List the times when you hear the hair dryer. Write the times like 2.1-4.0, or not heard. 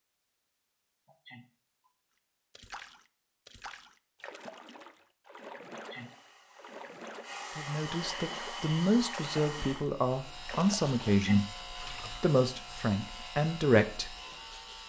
5.8-9.9.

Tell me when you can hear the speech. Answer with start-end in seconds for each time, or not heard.
7.5-14.2.